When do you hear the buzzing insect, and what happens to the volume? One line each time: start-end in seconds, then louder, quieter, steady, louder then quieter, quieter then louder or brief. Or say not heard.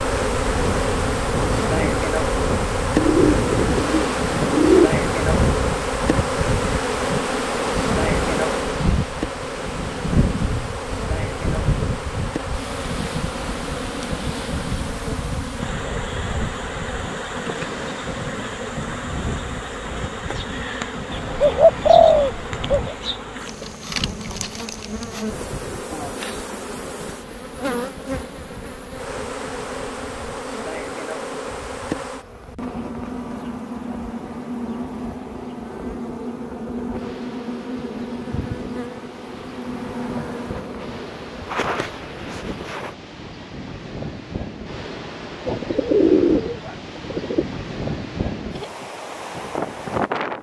0.0-43.0 quieter.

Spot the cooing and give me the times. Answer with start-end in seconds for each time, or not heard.
3.0-4.9, 21.1-22.9, 45.5-47.5.